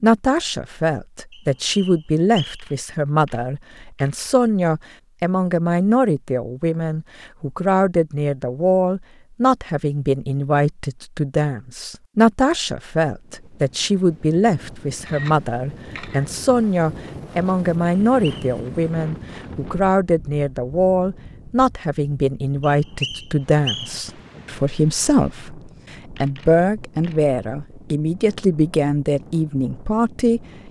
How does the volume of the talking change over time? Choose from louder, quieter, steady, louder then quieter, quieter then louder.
steady.